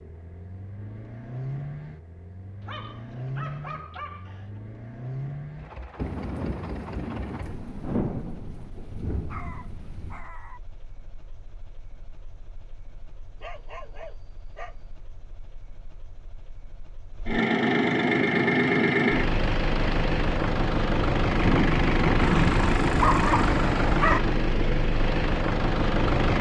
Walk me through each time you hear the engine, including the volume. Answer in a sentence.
You can hear the engine from 0.0 to 26.3 s, getting quieter then louder.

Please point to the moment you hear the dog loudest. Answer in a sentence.
The volume of the dog peaks at 23 seconds.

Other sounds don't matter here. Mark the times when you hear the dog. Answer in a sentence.
You can hear the dog from 2.6 to 4.6 s, from 9.2 to 10.6 s, from 13.4 to 14.8 s and from 22.1 to 24.2 s.